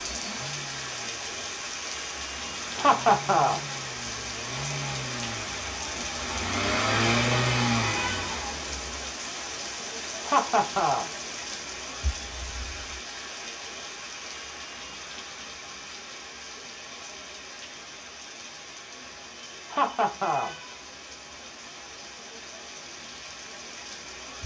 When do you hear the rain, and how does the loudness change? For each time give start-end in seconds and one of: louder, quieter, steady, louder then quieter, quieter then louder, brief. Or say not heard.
0.0-24.4 quieter.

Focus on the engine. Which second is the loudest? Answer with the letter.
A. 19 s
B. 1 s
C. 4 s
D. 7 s
D.